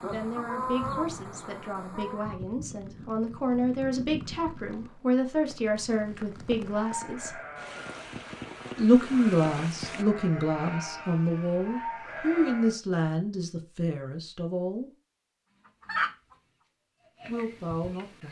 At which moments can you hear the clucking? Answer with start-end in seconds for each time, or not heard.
0.0-2.4, 15.7-16.4, 16.9-18.2.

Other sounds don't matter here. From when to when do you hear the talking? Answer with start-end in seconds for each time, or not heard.
0.0-7.3, 8.8-14.9, 17.2-18.2.